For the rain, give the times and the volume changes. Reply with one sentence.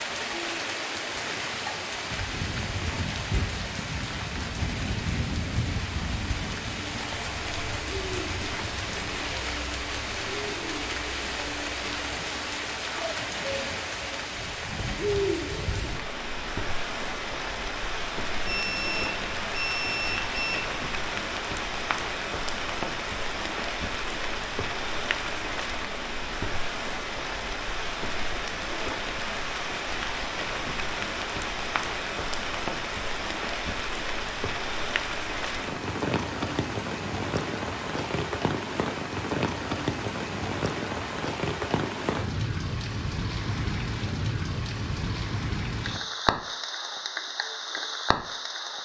You can hear the rain from 0.0 to 48.8 s, at a steady volume.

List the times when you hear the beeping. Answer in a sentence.
You can hear the beeping from 18.4 to 20.6 s.